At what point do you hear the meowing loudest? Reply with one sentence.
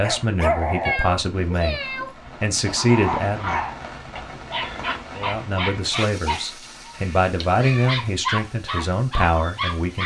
The volume of the meowing peaks at 1 second.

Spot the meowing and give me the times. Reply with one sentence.
The meowing can be heard from 0.8 to 2.1 s and from 6.9 to 8.1 s.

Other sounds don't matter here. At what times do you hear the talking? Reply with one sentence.
You can hear the talking from 0.0 to 3.6 s and from 5.2 to 10.0 s.